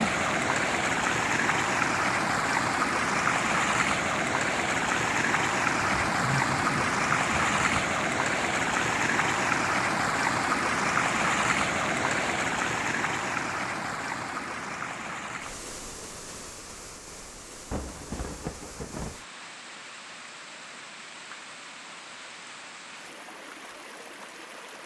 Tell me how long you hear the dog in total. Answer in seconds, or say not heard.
not heard.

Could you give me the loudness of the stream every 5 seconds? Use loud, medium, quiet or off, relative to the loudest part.
loud, loud, loud, quiet, quiet.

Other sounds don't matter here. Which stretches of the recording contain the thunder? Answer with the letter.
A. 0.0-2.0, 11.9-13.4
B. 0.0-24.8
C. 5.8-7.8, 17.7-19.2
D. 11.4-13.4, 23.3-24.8
C.